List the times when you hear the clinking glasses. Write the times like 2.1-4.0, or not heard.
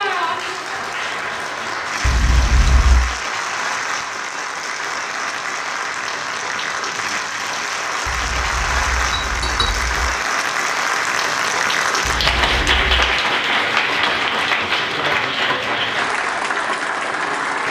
2.0-3.0, 8.1-10.1, 12.1-13.1.